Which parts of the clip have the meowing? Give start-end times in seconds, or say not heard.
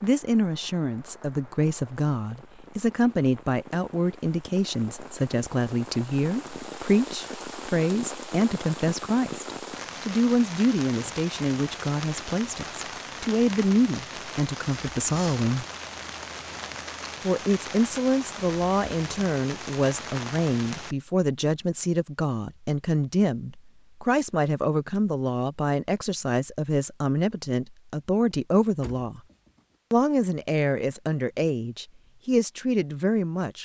not heard.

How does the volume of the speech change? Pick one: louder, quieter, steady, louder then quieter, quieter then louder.
steady.